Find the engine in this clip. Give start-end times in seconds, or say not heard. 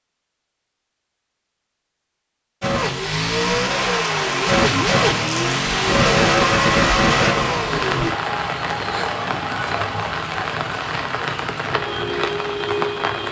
2.6-8.2.